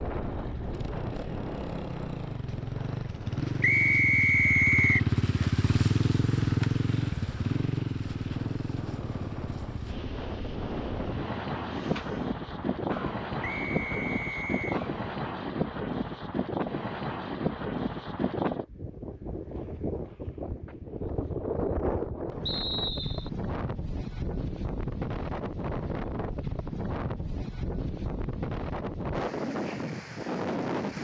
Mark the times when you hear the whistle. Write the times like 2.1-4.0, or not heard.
3.6-5.1, 13.4-14.8, 22.4-23.3.